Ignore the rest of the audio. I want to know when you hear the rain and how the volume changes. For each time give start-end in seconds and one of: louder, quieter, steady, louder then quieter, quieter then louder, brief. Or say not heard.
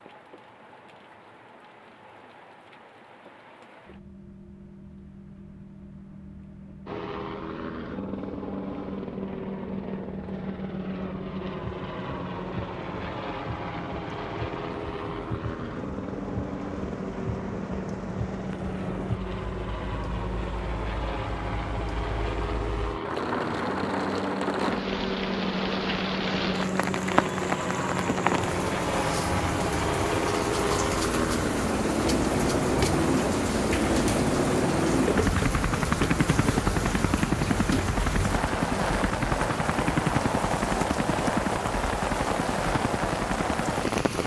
0.0-44.2 louder.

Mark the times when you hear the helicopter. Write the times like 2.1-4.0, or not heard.
6.8-44.2.